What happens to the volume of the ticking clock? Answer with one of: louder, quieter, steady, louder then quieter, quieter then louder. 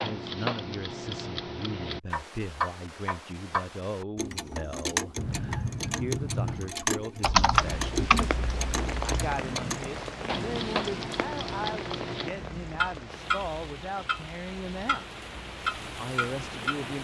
steady.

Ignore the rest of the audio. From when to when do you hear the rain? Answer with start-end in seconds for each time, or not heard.
7.5-16.9.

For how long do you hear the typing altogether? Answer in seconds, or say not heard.
2 s.